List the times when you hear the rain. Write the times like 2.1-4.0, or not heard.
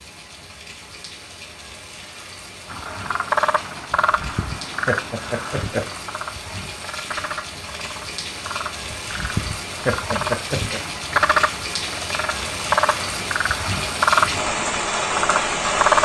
0.0-16.0.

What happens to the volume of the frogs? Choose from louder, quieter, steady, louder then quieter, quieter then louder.
quieter then louder.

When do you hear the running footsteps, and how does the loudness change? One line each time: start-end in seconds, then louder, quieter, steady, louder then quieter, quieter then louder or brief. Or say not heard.
not heard.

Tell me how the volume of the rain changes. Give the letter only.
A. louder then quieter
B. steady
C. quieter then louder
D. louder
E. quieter
D.